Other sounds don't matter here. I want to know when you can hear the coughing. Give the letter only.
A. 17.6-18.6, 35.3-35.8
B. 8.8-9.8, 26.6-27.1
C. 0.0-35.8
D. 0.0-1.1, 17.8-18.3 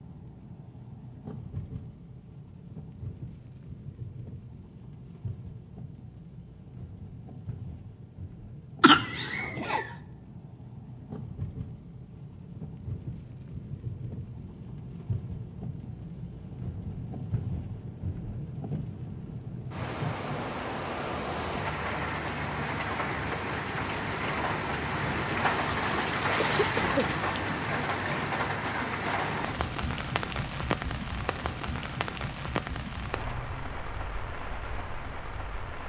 B.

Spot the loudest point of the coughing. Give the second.
9 s.